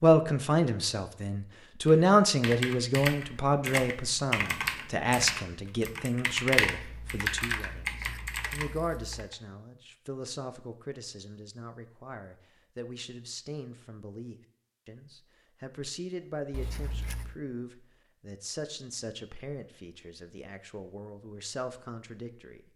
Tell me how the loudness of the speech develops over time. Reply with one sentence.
The volume of the speech goes down.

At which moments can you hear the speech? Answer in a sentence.
The speech can be heard from 0.0 to 22.7 s.